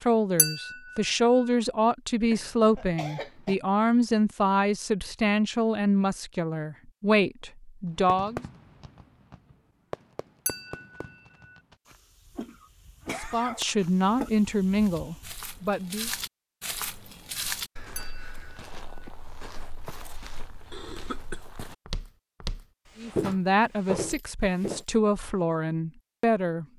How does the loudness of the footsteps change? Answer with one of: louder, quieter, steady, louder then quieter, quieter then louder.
quieter then louder.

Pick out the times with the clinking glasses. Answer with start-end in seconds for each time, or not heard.
0.3-1.0, 10.4-11.1, 17.9-18.5.